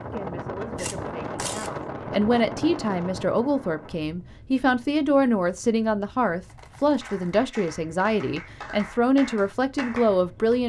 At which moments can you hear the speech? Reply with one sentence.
The speech can be heard from 0.0 to 10.6 s.